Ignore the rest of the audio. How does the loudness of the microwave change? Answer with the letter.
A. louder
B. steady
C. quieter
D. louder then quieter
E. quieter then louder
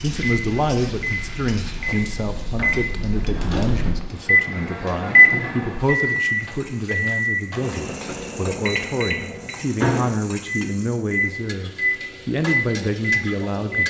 D.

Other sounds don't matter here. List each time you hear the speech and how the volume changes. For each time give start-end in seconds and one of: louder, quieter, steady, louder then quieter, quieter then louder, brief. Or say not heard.
0.0-13.8 steady.